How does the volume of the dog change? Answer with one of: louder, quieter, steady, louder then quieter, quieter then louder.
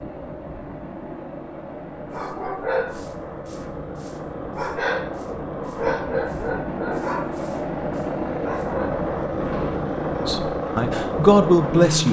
quieter.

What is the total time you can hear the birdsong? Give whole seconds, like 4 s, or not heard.
not heard.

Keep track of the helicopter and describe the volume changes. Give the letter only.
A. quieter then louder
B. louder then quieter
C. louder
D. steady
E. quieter
C.